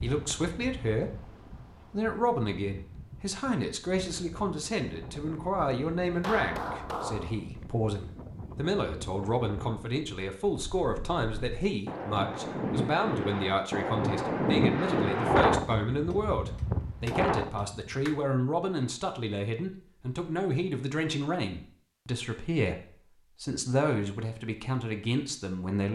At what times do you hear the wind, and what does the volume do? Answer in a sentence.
You can hear the wind from 0.0 to 17.9 s, getting louder.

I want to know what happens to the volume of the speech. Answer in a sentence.
The volume of the speech stays about the same.